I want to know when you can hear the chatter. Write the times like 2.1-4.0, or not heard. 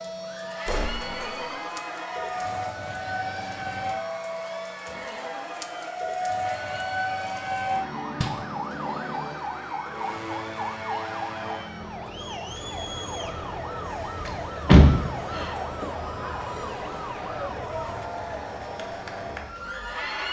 0.1-20.2.